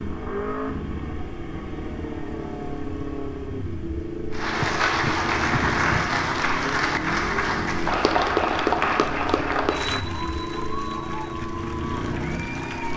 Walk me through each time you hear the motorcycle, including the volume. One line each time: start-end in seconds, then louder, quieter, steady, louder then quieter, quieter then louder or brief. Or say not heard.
0.0-12.9 steady.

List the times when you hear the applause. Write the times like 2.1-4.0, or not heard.
4.3-12.9.